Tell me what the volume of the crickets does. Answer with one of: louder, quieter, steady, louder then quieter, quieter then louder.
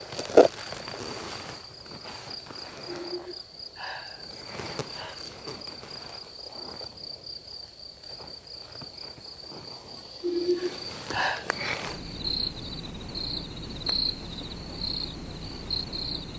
quieter then louder.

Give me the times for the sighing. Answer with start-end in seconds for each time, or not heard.
2.9-5.2, 9.9-11.5.